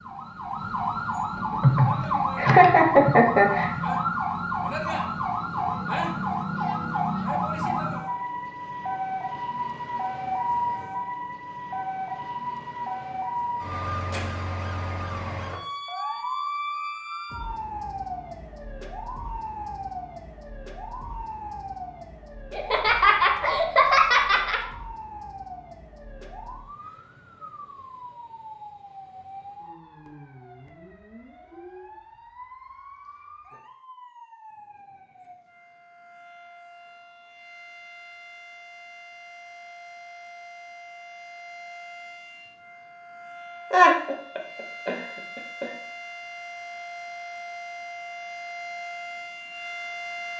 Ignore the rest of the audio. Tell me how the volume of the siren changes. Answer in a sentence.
The loudness of the siren goes down, then up.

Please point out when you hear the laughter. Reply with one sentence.
You can hear the laughter from 1.6 to 3.8 s, from 22.5 to 24.6 s and from 43.7 to 45.7 s.